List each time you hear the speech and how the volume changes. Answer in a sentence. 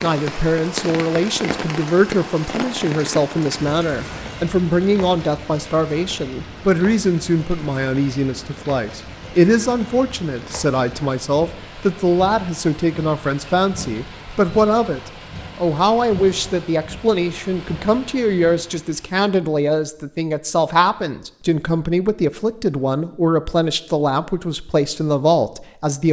The speech can be heard from 0.0 to 26.0 s, at a steady volume.